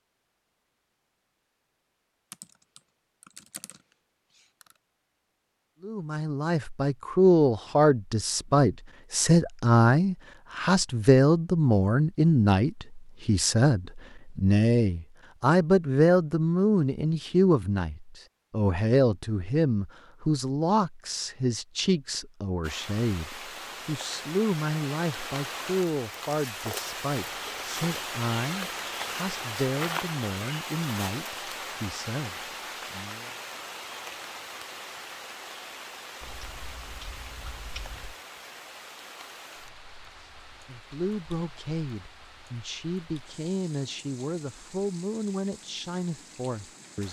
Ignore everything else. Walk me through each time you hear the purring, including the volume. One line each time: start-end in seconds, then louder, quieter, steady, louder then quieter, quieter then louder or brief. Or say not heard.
not heard.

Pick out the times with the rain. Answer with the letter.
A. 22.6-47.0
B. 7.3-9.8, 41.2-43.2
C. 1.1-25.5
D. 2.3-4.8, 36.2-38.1
A.